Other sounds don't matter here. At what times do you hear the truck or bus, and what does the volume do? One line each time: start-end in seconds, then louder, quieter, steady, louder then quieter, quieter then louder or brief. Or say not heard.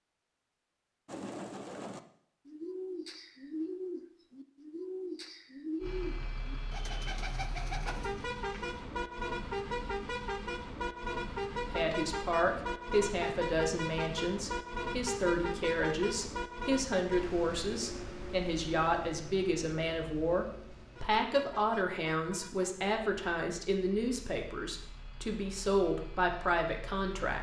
5.8-27.3 quieter.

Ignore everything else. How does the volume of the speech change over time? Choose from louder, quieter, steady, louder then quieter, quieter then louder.
steady.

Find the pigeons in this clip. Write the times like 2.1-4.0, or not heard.
1.1-8.8.